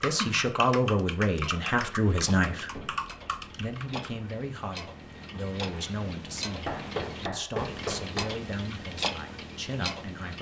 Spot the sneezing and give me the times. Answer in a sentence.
You can't hear the sneezing here.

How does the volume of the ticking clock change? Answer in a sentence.
The loudness of the ticking clock goes up.